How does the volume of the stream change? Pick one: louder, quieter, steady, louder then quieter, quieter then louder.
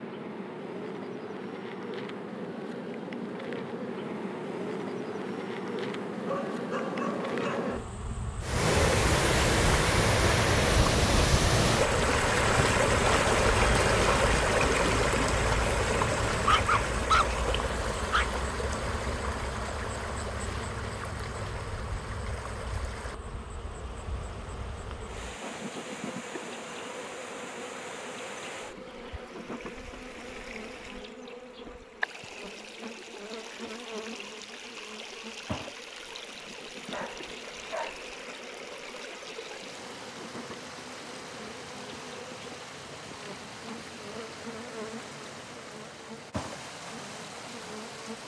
quieter.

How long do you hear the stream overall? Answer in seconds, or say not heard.
40 s.